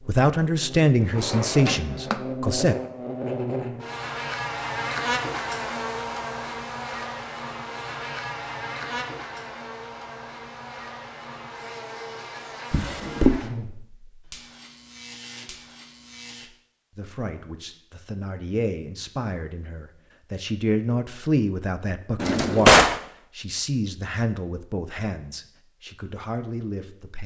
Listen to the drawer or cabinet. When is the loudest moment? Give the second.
23 s.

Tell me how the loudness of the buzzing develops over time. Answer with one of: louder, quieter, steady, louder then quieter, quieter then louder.
quieter.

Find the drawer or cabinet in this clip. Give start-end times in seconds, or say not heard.
1.1-2.1, 12.7-13.4, 22.1-23.0.